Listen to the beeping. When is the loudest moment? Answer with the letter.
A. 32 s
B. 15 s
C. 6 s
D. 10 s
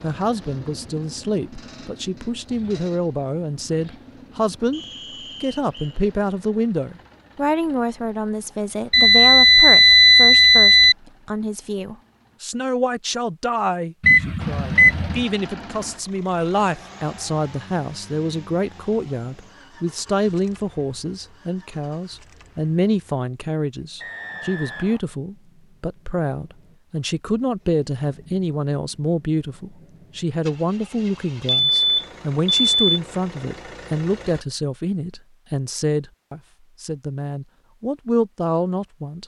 D.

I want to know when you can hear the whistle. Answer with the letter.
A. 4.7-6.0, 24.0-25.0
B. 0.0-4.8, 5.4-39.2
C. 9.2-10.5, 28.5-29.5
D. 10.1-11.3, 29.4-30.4
A.